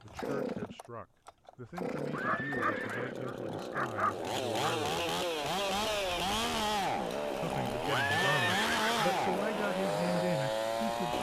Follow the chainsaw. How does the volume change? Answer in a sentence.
The volume of the chainsaw goes up.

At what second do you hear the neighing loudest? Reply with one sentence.
The loudest moment of the neighing is at 8 seconds.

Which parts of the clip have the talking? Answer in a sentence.
The talking can be heard from 0.0 to 5.0 s and from 7.4 to 11.1 s.